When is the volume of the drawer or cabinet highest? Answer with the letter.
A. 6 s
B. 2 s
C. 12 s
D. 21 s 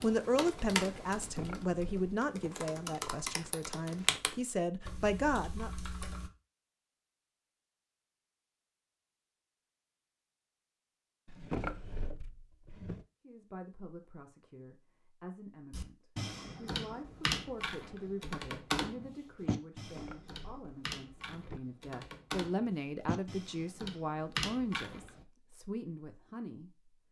C.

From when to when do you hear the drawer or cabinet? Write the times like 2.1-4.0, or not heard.
1.1-2.1, 11.2-13.1, 19.8-21.6.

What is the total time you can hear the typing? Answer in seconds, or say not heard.
16 s.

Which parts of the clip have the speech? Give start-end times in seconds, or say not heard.
0.0-5.7, 13.2-26.9.